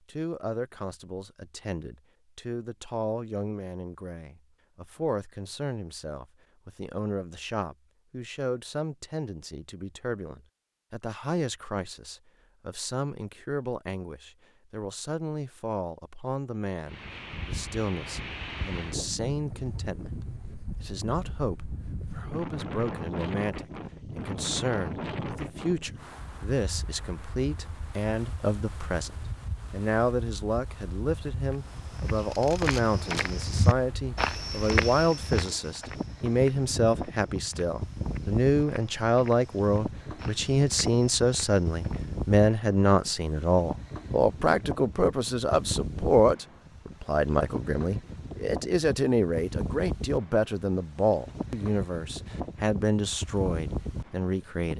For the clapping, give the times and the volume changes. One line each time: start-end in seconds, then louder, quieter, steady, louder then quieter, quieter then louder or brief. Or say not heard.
not heard.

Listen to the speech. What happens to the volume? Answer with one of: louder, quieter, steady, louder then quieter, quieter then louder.
louder.